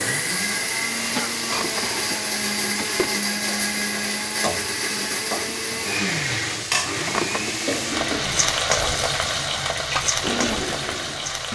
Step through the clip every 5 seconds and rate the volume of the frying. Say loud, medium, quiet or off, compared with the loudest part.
medium, loud, loud.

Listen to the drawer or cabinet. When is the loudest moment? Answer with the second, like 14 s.
7 s.